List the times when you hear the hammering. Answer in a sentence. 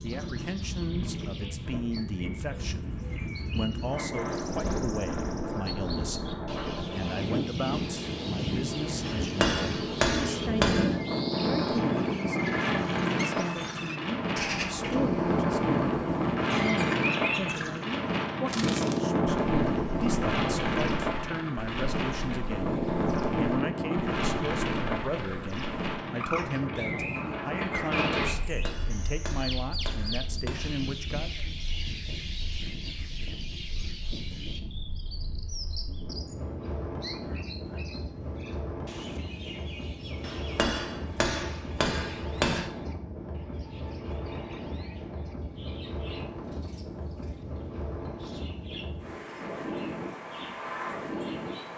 You can hear the hammering from 9.1 to 10.9 s, from 28.4 to 30.9 s and from 40.2 to 42.6 s.